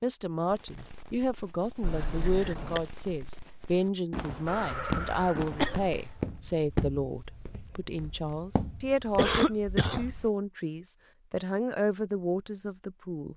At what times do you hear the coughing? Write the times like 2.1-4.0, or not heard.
1.8-2.8, 4.5-6.2, 9.2-10.1.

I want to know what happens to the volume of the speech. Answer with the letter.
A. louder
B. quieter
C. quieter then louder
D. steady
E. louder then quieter
D.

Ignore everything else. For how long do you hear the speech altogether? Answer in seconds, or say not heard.
13 s.